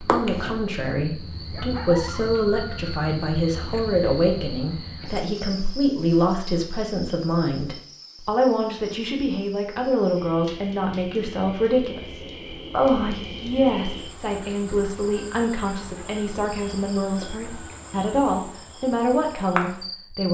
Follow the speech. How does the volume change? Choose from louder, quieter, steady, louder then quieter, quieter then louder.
steady.